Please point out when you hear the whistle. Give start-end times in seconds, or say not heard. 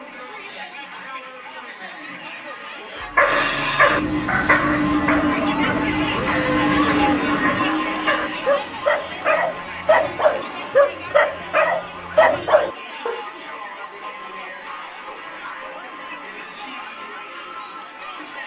not heard.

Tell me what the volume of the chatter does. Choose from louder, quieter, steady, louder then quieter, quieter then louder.
louder then quieter.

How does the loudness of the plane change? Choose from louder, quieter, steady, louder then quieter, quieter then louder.
quieter.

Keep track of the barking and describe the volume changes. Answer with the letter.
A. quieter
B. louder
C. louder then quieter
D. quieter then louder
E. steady
D.